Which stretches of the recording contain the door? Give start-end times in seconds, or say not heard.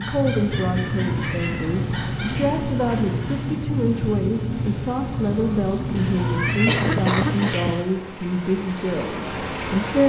not heard.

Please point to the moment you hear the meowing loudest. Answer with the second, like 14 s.
7 s.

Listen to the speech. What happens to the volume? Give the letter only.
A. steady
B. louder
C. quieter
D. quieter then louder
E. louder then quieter
A.